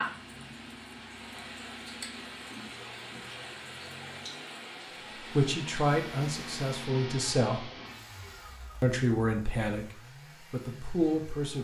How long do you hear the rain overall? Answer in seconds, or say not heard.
7 s.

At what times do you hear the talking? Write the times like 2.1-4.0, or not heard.
5.2-7.7, 8.8-11.5.